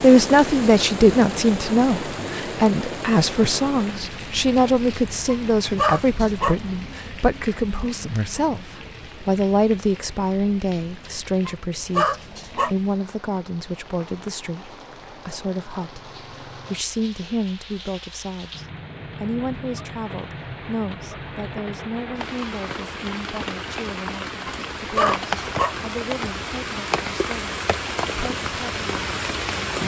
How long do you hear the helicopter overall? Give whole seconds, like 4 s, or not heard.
not heard.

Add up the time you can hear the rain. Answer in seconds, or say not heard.
30 s.